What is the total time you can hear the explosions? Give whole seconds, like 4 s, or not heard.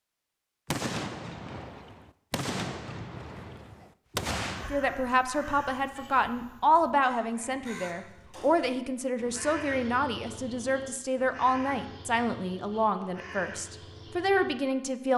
4 s.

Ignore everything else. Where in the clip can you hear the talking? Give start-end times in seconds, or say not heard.
4.6-15.1.